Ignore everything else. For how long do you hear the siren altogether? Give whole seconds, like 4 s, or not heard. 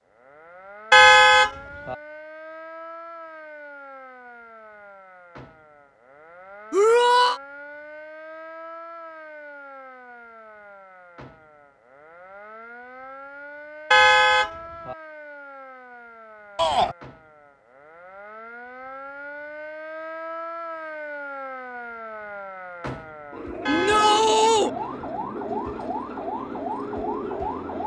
28 s.